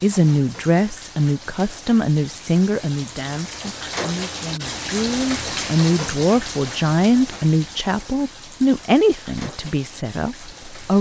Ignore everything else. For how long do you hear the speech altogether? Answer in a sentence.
The speech can be heard for 11 seconds in total.